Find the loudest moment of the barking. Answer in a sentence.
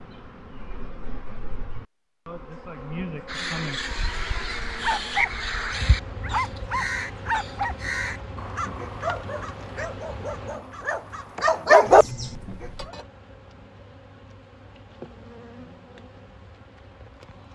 The volume of the barking peaks at 12 seconds.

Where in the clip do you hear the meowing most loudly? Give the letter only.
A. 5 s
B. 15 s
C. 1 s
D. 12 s
A.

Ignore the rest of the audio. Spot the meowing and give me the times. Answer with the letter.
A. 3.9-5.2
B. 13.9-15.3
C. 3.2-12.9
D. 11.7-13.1
A.